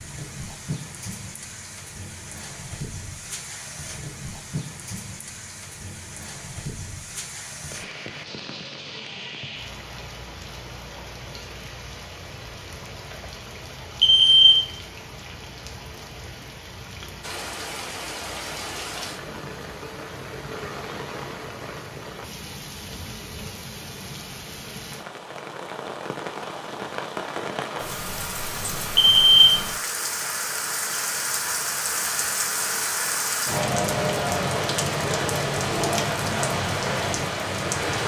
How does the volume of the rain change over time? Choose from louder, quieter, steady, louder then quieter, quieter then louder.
louder.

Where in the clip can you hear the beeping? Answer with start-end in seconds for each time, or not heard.
14.0-14.7, 28.9-29.6.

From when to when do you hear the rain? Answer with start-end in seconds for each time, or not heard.
0.0-38.0.